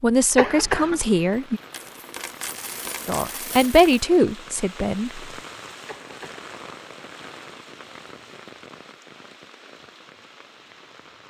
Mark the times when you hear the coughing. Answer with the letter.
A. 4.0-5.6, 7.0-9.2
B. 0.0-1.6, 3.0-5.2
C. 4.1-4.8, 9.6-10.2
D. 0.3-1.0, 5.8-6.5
D.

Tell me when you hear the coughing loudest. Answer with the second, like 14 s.
1 s.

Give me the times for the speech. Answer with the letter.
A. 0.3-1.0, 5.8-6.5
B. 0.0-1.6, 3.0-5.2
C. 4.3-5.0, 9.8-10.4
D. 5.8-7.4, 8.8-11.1
B.